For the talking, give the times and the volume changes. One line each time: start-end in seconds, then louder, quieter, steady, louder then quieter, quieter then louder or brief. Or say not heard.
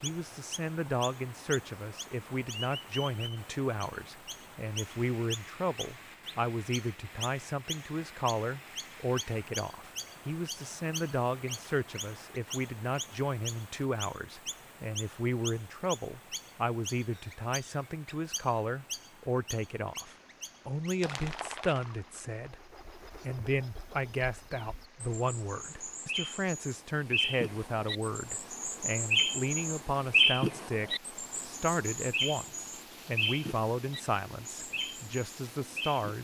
0.0-36.1 steady.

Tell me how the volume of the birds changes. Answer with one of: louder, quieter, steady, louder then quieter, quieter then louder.
louder.